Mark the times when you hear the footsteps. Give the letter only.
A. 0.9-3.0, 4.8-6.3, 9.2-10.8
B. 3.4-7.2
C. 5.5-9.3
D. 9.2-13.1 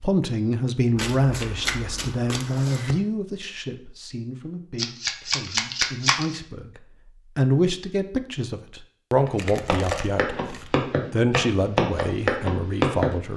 D.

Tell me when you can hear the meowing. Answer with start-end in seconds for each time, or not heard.
not heard.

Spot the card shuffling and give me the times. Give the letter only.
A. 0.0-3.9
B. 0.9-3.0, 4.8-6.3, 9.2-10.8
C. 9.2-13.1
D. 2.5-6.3
B.